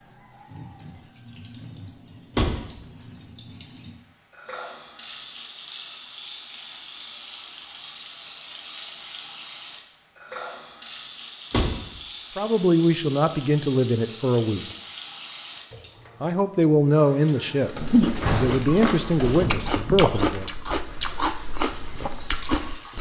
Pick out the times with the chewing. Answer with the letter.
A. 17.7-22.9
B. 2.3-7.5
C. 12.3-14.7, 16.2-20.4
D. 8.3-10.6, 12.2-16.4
A.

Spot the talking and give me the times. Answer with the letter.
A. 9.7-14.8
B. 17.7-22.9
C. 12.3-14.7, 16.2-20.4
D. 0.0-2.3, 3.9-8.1
C.